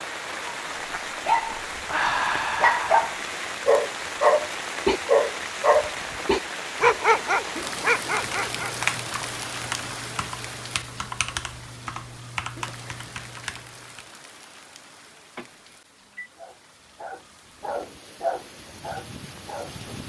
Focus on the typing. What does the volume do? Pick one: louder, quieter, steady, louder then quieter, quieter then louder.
quieter.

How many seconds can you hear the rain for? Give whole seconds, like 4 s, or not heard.
20 s.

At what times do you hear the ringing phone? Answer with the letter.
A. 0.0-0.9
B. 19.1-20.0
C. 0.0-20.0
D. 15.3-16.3
D.